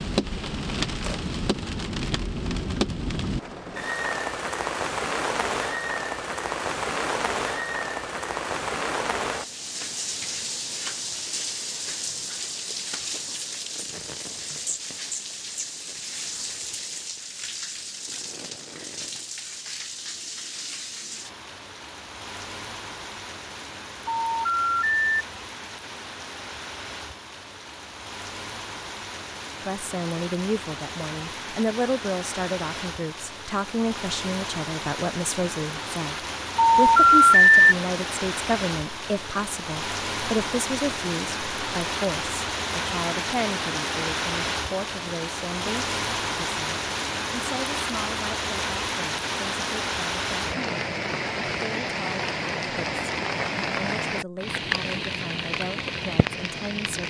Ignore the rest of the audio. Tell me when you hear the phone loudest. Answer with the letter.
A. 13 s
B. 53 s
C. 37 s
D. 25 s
C.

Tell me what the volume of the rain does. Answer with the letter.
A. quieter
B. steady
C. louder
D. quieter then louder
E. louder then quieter
D.